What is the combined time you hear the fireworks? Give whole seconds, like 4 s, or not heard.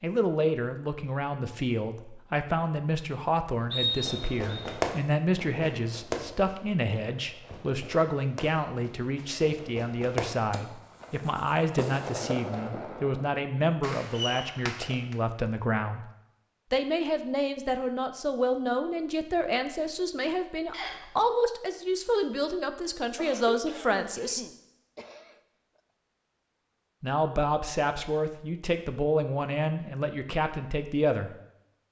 11 s.